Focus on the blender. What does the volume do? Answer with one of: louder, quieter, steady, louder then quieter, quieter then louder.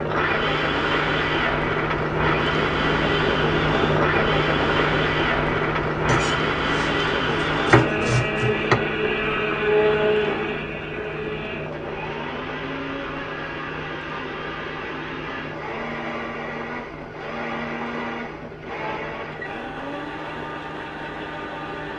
quieter.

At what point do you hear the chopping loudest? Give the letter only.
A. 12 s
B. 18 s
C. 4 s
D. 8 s
D.